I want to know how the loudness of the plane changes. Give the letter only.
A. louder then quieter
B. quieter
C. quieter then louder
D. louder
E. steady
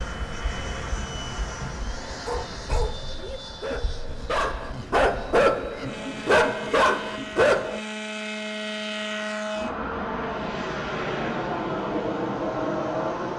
C.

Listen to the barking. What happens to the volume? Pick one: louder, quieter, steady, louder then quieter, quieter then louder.
louder.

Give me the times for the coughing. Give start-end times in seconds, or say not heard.
not heard.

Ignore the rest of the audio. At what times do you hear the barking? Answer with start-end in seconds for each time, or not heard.
2.2-7.8.